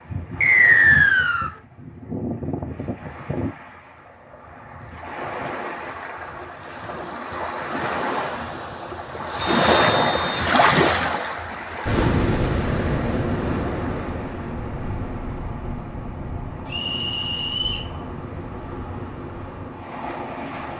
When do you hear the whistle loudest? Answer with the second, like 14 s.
1 s.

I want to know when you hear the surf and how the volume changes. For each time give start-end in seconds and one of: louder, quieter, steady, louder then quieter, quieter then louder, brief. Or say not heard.
0.0-20.7 louder then quieter.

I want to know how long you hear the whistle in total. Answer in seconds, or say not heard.
3 s.